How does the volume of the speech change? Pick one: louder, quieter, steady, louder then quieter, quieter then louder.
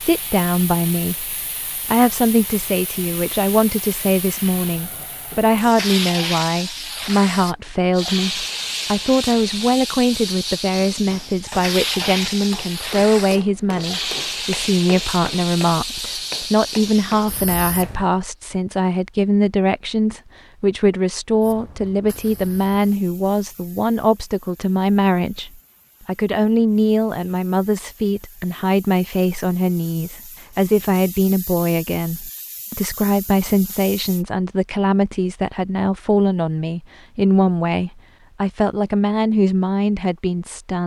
steady.